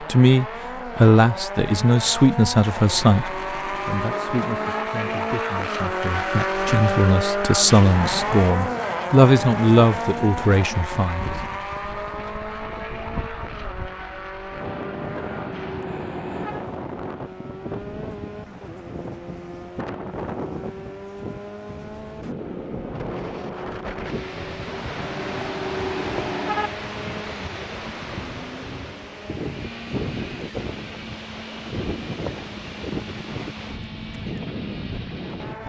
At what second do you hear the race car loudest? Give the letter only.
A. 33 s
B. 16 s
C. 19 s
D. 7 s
D.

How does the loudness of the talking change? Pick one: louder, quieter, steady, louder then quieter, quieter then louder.
quieter then louder.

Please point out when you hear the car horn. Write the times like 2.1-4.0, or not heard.
2.8-4.8, 14.7-16.6, 24.6-26.7.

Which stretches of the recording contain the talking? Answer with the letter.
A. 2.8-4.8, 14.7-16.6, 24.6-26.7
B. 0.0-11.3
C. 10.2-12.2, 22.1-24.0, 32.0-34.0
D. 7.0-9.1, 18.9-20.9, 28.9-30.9
B.